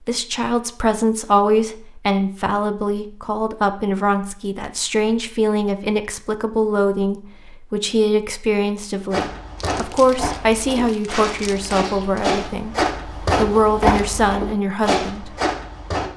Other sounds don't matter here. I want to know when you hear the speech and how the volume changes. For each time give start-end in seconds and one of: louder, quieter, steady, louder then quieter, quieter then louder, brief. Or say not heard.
0.1-15.3 steady.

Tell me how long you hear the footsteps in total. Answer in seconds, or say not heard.
7 s.